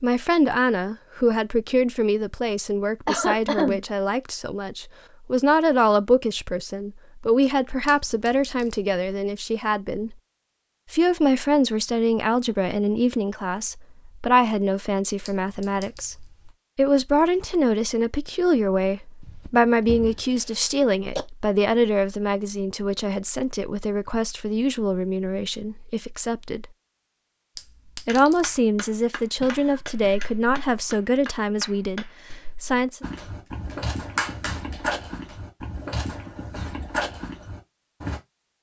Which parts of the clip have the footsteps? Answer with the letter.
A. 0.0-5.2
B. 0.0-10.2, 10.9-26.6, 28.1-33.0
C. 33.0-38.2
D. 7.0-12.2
C.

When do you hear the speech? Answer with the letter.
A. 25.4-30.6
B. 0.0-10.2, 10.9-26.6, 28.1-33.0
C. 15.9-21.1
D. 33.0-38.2
B.